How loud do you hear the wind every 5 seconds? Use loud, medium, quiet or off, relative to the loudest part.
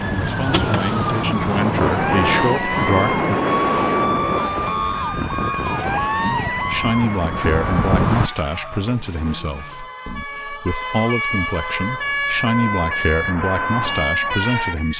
loud, loud, off.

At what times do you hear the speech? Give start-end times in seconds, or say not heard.
0.1-3.2, 6.2-14.9.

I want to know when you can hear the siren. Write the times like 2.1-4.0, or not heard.
0.0-14.9.